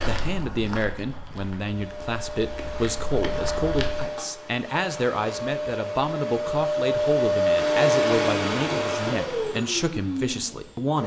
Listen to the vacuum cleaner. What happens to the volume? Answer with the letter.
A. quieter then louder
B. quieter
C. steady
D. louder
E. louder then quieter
E.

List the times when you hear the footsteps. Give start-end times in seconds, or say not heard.
0.0-4.1.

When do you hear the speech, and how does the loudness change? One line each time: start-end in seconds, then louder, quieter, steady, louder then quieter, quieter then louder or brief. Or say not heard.
0.0-11.0 steady.